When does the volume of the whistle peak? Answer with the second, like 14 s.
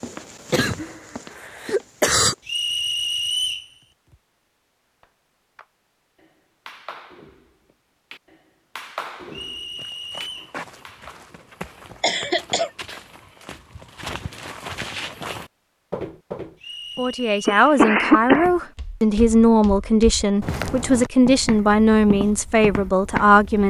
3 s.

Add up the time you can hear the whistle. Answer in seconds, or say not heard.
4 s.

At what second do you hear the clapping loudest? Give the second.
9 s.